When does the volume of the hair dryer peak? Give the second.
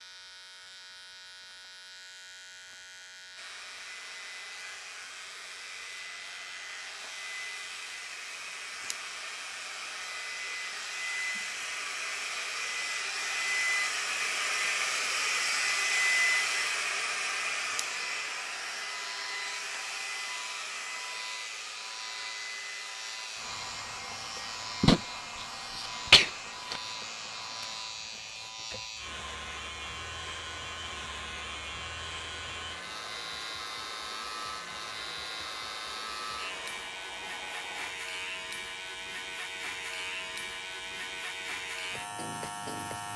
16 s.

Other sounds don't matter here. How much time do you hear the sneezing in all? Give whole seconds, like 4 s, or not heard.
2 s.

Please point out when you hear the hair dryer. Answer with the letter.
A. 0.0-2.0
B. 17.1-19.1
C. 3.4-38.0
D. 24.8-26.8
C.